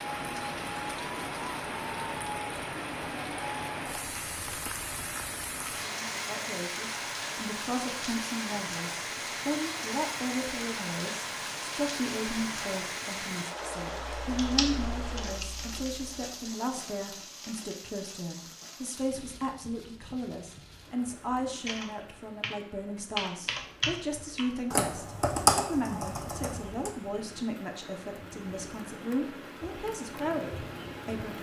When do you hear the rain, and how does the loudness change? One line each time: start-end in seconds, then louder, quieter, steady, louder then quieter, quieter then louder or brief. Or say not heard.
0.0-31.3 quieter then louder.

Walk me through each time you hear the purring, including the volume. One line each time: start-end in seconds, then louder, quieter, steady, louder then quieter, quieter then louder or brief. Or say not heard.
not heard.